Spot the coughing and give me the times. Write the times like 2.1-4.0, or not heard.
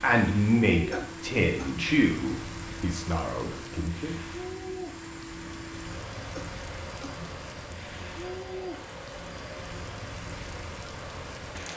0.9-1.9, 6.3-7.3.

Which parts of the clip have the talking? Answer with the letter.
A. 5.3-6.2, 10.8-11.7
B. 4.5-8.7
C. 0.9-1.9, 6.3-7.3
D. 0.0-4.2
D.